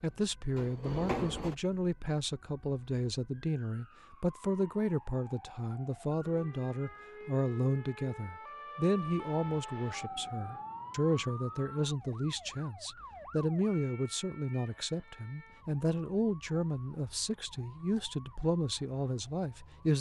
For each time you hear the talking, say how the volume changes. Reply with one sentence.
The talking can be heard from 0.0 to 19.9 s, at a steady volume.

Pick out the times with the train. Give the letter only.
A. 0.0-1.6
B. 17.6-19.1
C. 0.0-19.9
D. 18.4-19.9
A.